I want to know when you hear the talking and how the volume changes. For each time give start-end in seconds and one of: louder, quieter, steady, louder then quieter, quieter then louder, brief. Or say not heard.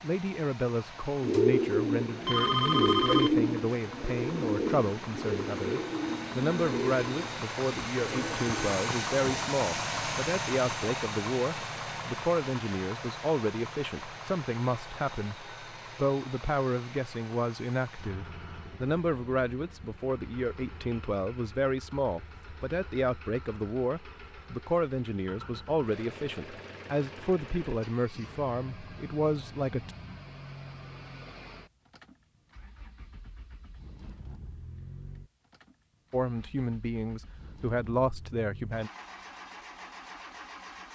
0.0-29.9 steady
36.1-38.9 brief.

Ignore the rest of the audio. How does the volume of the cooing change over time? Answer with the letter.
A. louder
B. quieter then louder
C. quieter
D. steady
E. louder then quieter
C.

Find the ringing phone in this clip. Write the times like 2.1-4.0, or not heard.
2.2-3.4.